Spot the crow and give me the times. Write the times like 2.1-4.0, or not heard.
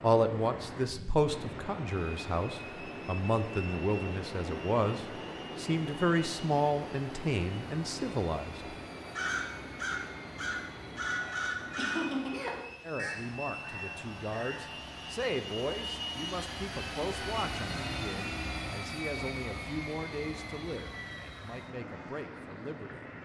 9.1-14.7.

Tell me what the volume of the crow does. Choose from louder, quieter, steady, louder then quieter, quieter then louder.
louder then quieter.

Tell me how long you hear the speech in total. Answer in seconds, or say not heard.
19 s.